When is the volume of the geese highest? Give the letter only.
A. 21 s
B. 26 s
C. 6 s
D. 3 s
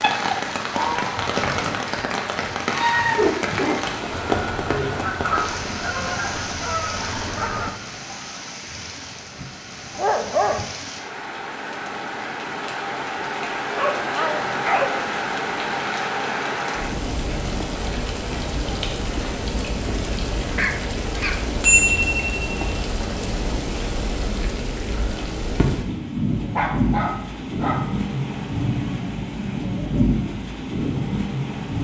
D.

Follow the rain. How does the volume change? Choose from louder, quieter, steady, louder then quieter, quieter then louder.
quieter then louder.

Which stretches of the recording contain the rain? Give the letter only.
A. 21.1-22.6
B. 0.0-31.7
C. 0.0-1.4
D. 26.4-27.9
B.